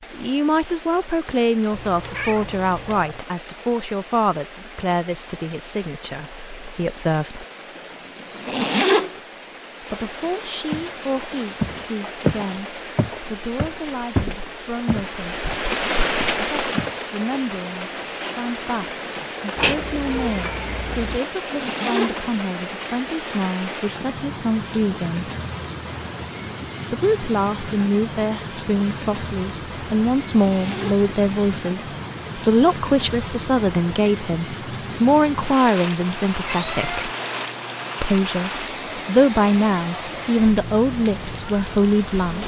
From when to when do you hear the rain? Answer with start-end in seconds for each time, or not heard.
0.0-42.4.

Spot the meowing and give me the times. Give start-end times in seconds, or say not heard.
1.7-3.2, 19.6-21.2, 36.0-38.6.